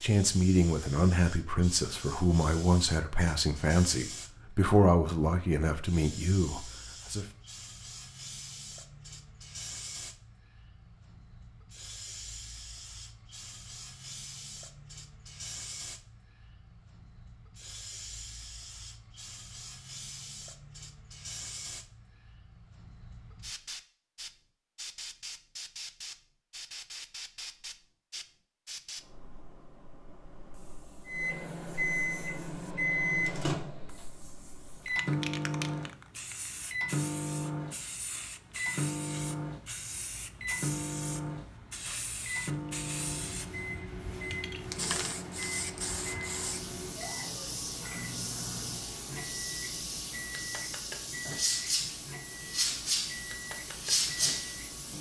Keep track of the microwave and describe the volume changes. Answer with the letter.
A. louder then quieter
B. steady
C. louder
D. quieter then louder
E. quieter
E.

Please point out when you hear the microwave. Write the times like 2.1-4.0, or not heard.
31.1-54.9.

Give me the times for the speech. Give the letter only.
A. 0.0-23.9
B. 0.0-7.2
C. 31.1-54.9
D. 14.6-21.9
B.